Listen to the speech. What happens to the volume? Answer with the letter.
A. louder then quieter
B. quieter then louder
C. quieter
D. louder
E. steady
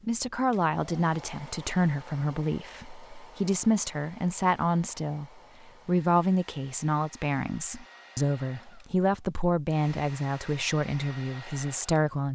E.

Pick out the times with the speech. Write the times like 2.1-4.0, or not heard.
0.0-12.3.